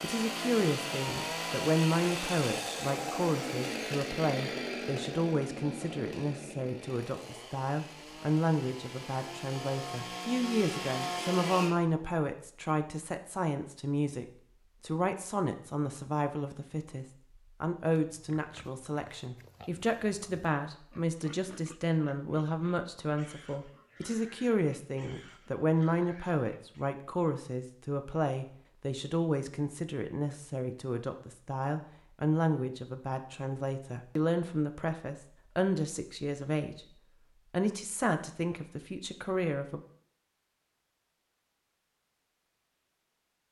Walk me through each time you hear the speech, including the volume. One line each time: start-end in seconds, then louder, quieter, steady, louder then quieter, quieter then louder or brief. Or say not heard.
0.0-36.9 steady
37.5-39.8 brief.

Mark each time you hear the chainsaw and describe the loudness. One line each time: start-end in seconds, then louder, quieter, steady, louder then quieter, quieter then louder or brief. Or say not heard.
0.0-11.8 quieter then louder.